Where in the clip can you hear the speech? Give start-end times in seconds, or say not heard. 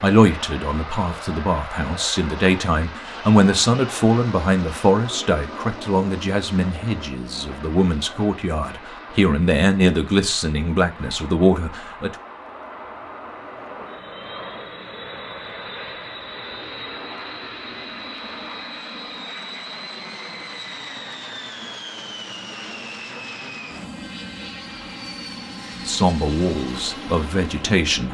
0.0-12.2, 25.8-28.0.